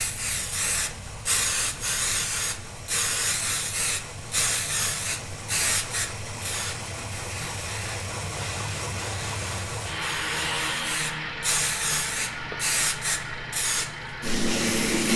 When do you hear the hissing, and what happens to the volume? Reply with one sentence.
You can hear the hissing from 0.0 to 15.1 s, getting quieter then louder.